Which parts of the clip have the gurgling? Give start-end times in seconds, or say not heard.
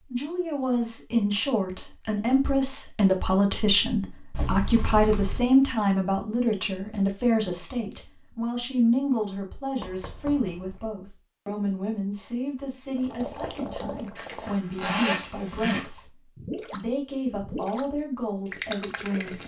12.9-17.9, 18.4-19.4.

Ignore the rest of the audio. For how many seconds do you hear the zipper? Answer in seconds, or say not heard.
3 s.